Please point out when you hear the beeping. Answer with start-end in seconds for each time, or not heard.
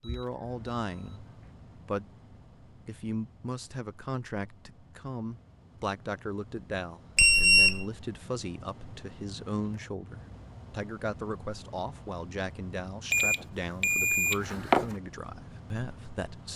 0.0-1.5, 7.2-7.8, 13.1-14.8.